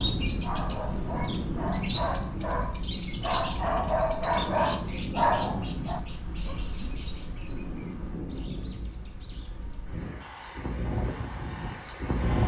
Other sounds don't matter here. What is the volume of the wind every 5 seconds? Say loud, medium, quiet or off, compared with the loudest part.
loud, medium, loud.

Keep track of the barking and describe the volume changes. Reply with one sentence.
The volume of the barking goes up.